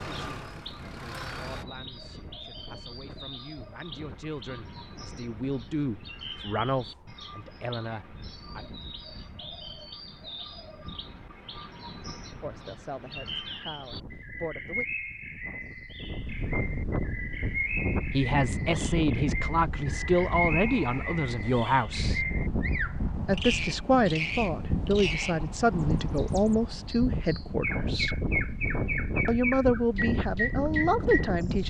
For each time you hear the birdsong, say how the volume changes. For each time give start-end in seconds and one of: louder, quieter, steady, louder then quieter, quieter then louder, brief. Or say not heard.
0.0-31.6 louder.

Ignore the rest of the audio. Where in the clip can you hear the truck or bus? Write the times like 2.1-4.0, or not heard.
0.0-1.6.